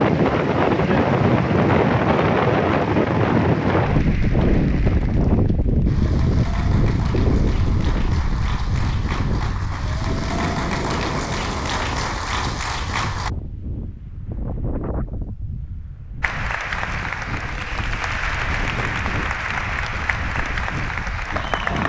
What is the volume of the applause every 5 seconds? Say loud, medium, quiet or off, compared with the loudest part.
medium, medium, loud, loud, loud.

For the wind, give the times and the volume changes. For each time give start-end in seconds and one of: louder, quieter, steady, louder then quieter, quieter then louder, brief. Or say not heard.
0.0-21.8 quieter.